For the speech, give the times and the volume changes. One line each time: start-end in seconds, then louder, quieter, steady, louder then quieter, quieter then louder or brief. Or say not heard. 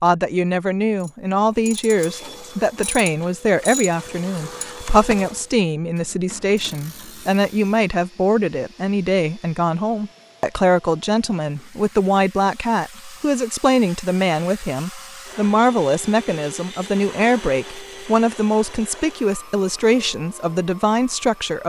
0.0-21.6 steady.